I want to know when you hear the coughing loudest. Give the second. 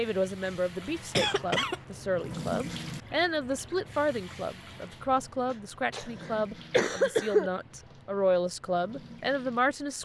7 s.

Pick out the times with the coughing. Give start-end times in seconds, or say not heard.
1.1-1.8, 5.5-7.5.